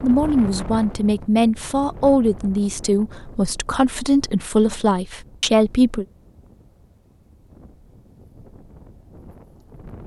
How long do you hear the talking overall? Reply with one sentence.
The talking can be heard for 6 seconds in total.